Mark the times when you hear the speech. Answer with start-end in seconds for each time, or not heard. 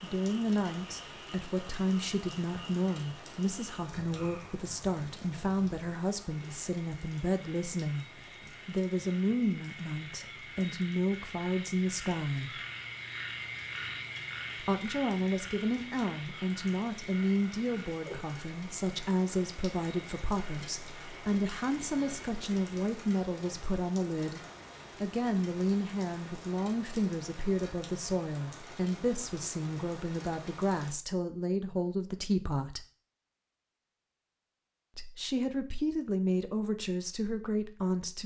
0.0-8.1, 8.7-12.5, 14.6-32.9, 35.0-38.2.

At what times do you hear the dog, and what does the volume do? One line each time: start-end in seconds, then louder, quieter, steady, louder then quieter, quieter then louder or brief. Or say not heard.
not heard.